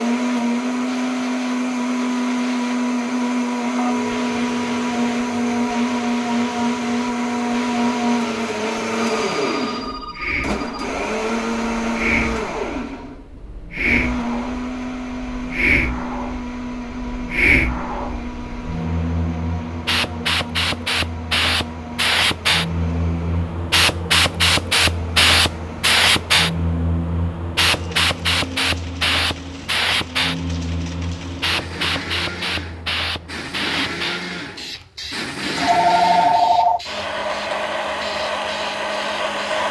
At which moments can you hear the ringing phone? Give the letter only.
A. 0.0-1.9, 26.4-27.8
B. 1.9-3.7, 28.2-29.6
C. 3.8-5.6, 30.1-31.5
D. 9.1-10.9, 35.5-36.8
D.